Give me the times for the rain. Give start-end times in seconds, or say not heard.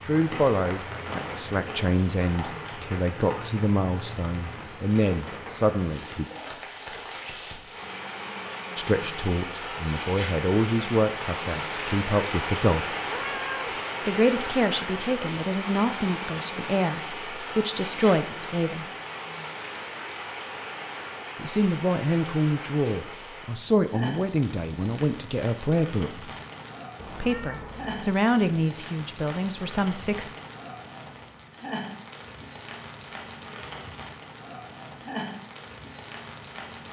0.0-36.8.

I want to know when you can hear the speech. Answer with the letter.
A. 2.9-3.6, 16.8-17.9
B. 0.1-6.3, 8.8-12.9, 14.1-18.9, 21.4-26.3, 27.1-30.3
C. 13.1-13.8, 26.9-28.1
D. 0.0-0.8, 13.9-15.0
B.